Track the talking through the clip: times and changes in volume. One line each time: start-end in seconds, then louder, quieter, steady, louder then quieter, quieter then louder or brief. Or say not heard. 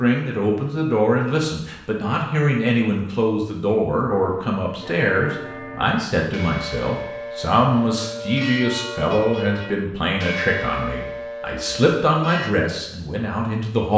0.0-13.9 steady.